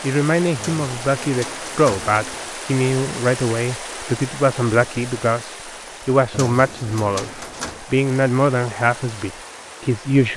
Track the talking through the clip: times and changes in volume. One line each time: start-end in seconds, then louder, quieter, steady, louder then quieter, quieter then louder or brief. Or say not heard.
0.0-10.3 steady.